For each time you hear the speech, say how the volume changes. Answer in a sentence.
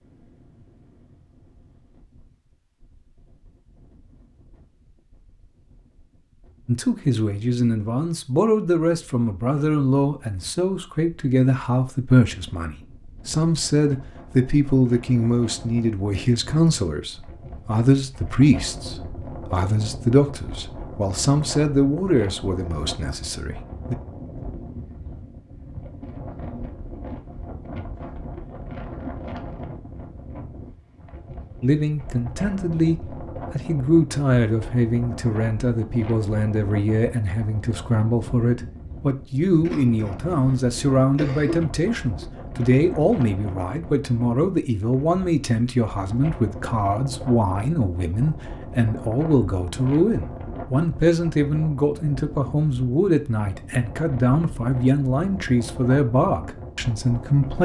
You can hear the speech from 6.7 to 23.9 s, at a steady volume; and from 31.6 to 57.6 s, at a steady volume.